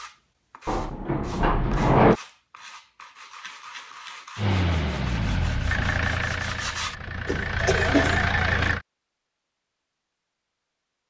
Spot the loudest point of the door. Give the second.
2 s.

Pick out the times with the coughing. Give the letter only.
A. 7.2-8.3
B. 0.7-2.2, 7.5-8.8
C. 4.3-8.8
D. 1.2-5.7
A.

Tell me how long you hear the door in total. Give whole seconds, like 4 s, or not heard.
3 s.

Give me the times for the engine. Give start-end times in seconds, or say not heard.
4.3-8.8.